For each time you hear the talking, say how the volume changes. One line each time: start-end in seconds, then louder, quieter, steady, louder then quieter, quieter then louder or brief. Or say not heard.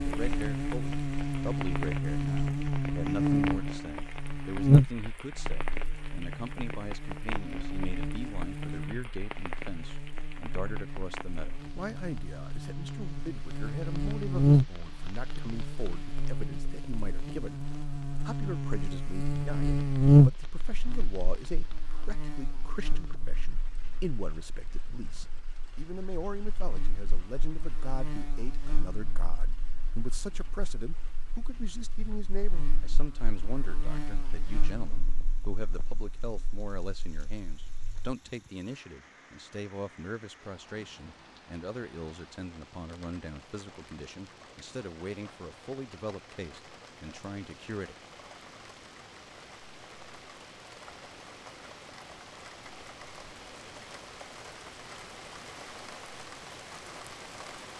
0.0-48.0 steady.